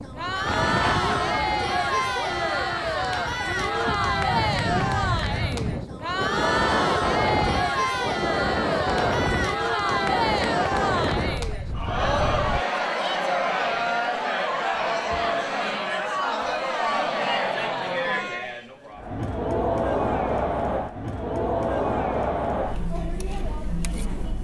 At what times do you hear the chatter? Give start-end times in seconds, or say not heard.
0.0-24.3.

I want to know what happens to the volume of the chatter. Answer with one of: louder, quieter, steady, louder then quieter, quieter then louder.
steady.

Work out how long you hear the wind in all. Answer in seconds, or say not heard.
13 s.